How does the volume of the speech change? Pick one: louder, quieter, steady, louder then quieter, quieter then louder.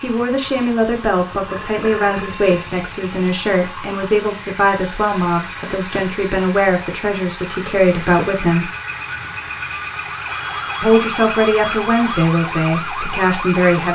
steady.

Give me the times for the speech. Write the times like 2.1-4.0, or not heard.
0.0-8.7, 10.8-13.8.